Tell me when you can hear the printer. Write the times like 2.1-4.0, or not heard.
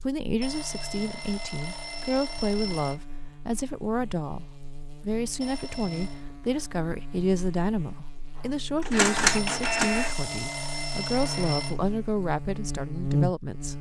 8.8-11.6.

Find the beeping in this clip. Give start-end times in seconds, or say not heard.
0.4-3.0, 5.4-6.2, 9.3-11.8.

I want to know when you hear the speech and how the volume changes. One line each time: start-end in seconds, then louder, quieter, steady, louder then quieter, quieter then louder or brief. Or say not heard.
0.0-13.7 steady.